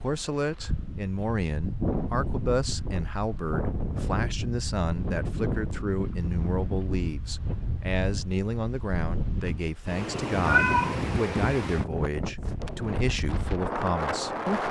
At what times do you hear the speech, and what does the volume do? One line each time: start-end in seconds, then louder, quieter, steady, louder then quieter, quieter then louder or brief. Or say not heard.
0.0-14.6 steady.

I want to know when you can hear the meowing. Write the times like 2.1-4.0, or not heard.
10.4-11.1.